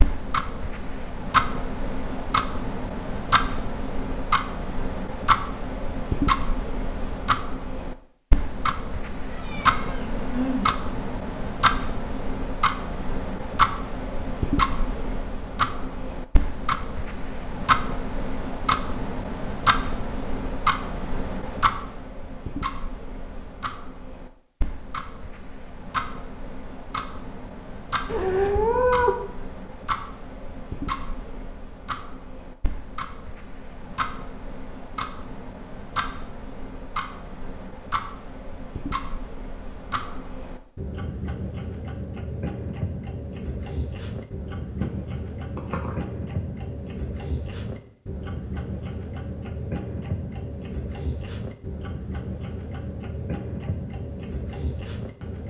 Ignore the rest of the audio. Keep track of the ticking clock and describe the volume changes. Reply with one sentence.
The loudness of the ticking clock goes down.